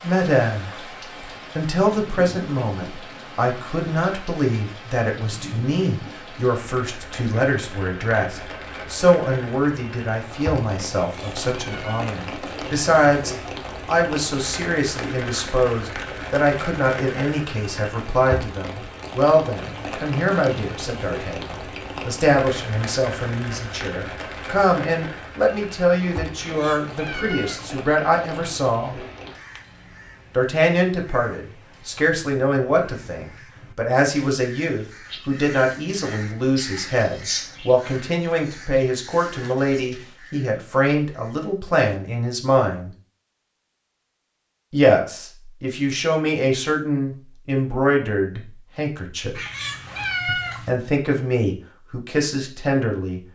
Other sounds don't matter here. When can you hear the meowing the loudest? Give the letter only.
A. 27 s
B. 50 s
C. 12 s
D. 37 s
B.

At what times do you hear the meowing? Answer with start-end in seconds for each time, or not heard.
10.9-12.1, 26.4-27.8, 49.4-50.7.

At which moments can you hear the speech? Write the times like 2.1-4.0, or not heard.
0.0-29.0, 30.3-42.9, 44.7-49.4, 50.2-53.2.